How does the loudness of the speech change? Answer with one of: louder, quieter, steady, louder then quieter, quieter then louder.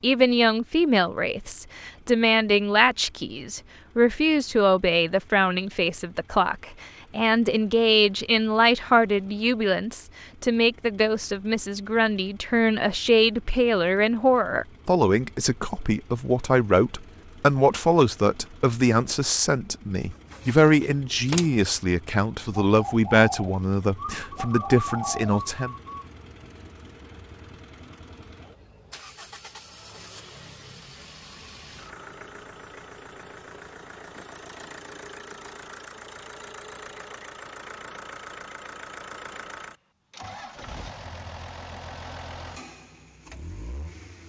steady.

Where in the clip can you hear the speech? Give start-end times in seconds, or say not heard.
0.0-25.8.